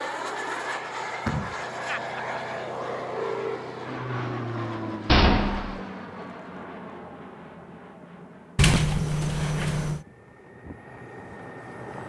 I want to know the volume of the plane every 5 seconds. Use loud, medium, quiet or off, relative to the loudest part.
loud, medium, medium.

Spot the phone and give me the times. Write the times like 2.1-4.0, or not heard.
1.9-2.4, 3.1-3.6.